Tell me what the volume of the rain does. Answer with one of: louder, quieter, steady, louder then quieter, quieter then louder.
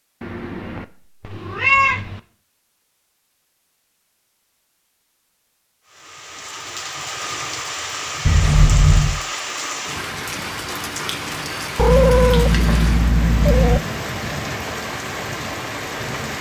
steady.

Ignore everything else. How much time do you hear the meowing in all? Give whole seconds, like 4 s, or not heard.
5 s.